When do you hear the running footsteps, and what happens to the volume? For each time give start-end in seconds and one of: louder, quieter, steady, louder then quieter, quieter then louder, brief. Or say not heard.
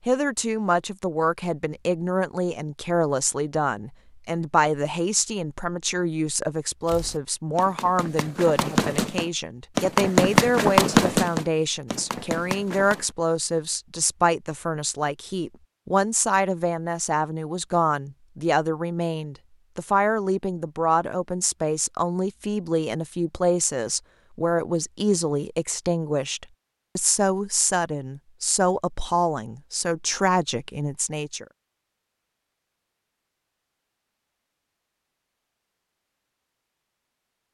6.8-13.2 louder then quieter.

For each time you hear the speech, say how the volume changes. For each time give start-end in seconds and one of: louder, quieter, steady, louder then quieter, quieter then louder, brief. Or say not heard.
0.1-31.4 steady.